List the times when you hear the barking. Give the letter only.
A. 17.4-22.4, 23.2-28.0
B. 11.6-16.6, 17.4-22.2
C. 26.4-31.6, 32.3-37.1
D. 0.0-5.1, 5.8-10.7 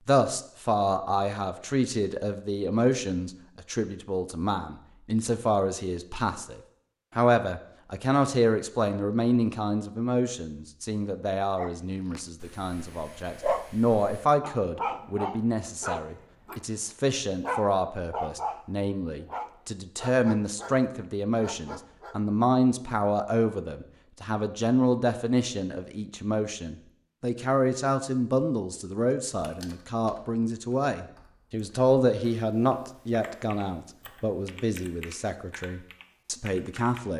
B.